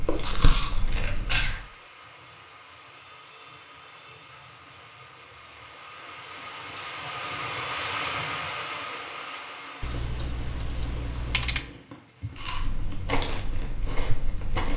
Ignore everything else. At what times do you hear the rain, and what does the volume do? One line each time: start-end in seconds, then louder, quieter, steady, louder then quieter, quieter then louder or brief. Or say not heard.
0.0-14.7 louder then quieter.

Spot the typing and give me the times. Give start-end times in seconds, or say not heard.
9.8-11.7.